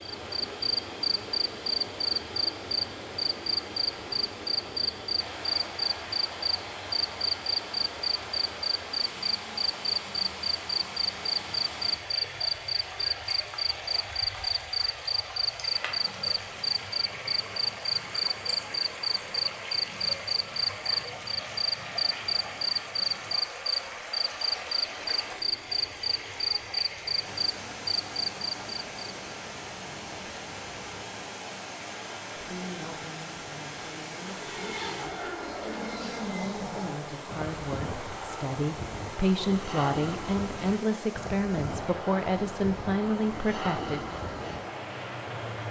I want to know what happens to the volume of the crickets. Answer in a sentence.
The loudness of the crickets stays about the same.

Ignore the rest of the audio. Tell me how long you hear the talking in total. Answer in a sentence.
You can hear the talking for 12 seconds altogether.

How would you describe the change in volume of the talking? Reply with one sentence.
The volume of the talking goes up.